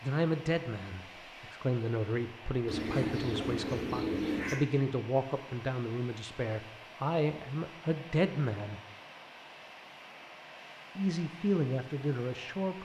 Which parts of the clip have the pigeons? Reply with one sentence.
The pigeons can be heard from 2.6 to 4.7 s.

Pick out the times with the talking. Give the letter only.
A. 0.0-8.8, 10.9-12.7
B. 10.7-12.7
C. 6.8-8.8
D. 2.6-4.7
A.